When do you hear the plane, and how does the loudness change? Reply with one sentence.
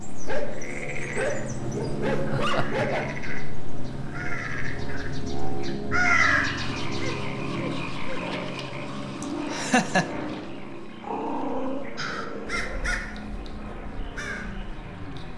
The plane can be heard from 0.0 to 15.3 s, getting quieter.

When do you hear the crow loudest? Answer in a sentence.
The volume of the crow peaks at 6 seconds.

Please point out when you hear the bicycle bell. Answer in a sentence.
The bicycle bell can't be heard in this clip.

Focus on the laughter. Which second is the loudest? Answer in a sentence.
The volume of the laughter peaks at 10 seconds.